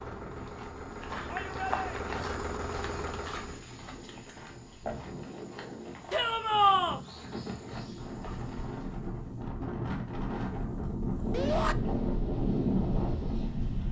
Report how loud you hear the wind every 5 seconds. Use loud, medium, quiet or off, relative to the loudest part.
quiet, medium, loud.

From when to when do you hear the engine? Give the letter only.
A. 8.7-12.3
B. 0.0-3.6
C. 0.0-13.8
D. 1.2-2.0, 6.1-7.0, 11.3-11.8
B.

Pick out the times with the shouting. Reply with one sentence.
The shouting can be heard from 1.2 to 2.0 s, from 6.1 to 7.0 s and from 11.3 to 11.8 s.